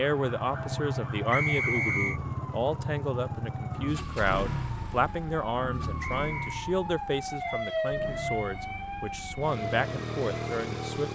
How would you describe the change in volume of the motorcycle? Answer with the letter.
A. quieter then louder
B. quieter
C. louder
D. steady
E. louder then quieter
A.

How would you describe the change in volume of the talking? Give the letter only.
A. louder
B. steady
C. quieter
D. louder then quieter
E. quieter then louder
B.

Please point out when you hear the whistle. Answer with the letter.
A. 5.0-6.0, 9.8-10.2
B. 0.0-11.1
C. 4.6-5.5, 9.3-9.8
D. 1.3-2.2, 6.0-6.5
D.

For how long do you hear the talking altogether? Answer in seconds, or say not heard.
11 s.